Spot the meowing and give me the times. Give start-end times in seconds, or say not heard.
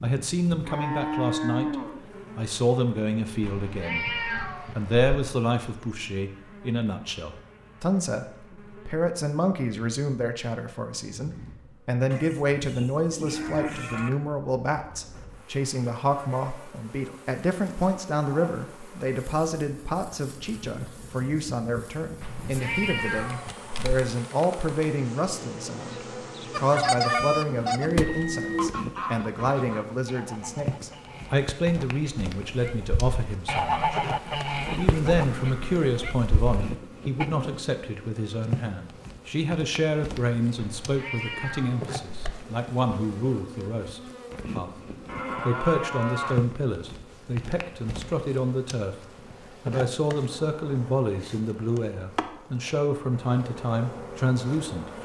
3.4-5.1, 22.2-23.9, 40.5-42.4.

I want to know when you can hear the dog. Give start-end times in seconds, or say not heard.
not heard.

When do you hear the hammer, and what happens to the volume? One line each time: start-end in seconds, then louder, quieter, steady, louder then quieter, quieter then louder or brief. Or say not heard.
not heard.